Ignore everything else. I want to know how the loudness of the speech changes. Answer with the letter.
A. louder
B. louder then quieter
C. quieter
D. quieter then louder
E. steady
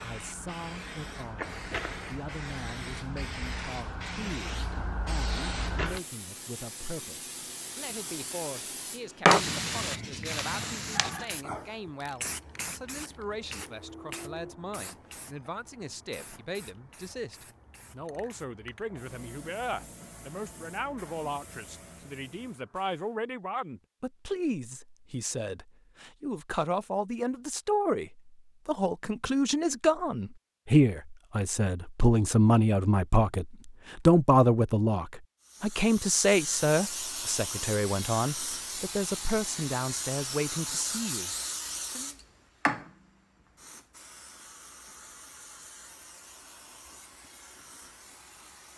A.